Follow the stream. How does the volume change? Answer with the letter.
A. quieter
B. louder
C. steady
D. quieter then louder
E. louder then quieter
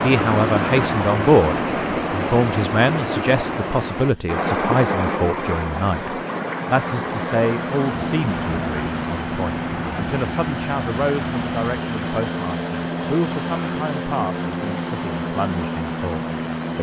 A.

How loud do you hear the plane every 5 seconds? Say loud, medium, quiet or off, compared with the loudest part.
medium, loud, loud, loud.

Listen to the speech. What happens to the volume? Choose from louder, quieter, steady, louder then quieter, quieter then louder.
quieter.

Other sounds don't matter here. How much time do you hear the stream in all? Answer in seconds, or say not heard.
17 s.